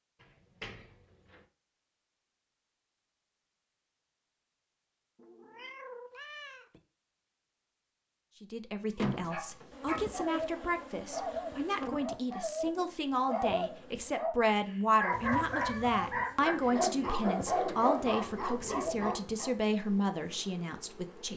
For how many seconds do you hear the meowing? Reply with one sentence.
You can hear the meowing for 3 seconds altogether.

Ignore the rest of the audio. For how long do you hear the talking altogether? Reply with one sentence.
You can hear the talking for 13 seconds altogether.